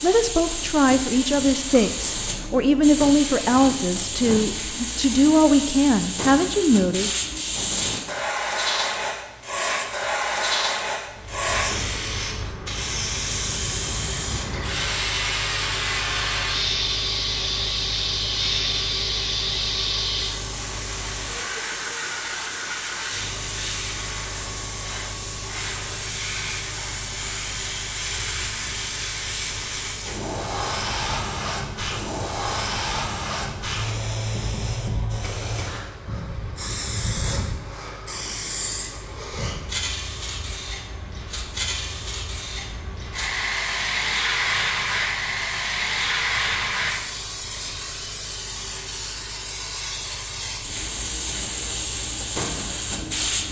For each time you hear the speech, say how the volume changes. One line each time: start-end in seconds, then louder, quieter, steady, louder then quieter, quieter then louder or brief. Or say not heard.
0.0-7.1 steady.